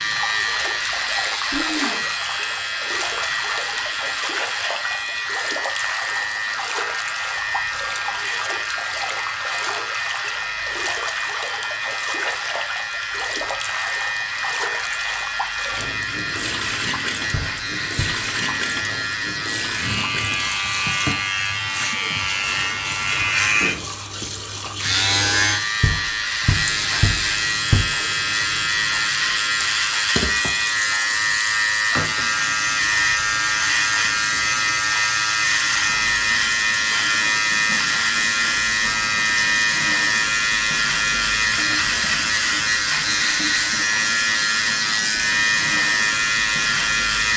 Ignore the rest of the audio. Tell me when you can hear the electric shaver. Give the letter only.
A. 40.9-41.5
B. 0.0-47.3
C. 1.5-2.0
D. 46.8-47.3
B.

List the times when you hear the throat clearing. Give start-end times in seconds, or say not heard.
1.5-2.0.